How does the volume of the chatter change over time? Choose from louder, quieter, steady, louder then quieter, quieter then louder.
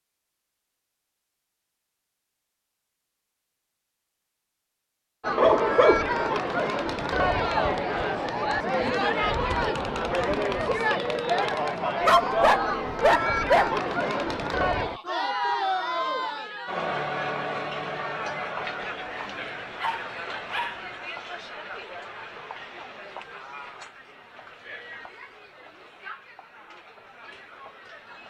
quieter.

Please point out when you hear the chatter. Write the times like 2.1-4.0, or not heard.
5.2-28.2.